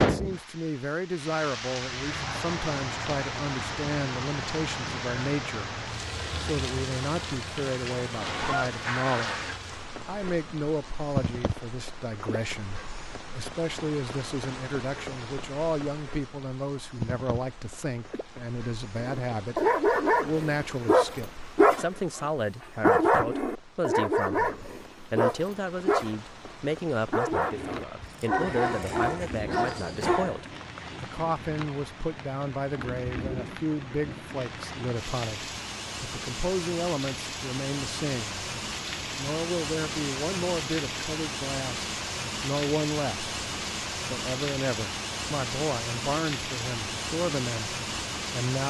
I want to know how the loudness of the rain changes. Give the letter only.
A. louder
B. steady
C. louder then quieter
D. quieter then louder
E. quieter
D.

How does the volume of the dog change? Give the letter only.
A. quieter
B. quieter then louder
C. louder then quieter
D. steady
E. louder
A.